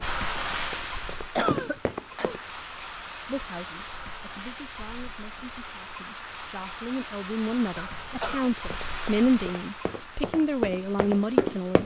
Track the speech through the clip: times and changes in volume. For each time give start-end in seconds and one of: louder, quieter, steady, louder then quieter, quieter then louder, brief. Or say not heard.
3.2-11.8 louder.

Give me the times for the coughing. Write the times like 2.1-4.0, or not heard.
1.4-2.4, 7.8-8.5.